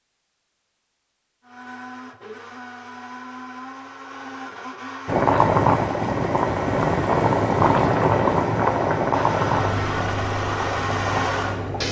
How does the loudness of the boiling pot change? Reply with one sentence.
The loudness of the boiling pot goes down.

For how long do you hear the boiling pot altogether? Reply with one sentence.
The boiling pot can be heard for 7 seconds in total.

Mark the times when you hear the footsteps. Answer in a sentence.
You can't hear the footsteps here.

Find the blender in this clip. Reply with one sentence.
The blender can be heard from 1.4 to 11.8 s.